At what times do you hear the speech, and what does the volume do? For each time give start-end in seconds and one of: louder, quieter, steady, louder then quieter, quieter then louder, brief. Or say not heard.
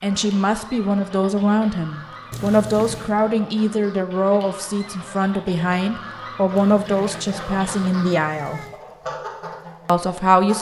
0.0-8.6 steady
9.8-10.5 brief.